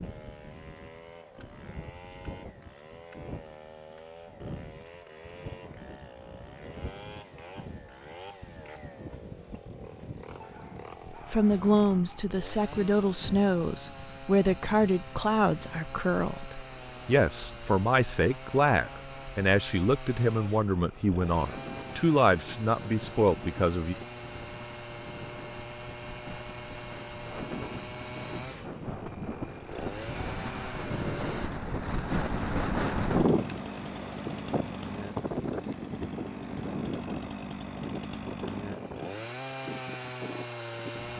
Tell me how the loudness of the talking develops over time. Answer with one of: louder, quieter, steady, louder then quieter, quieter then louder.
steady.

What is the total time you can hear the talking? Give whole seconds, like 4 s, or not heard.
13 s.